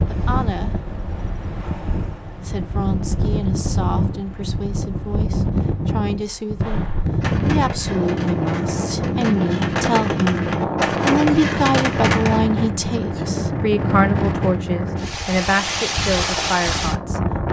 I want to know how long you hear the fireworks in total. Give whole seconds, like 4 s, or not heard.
6 s.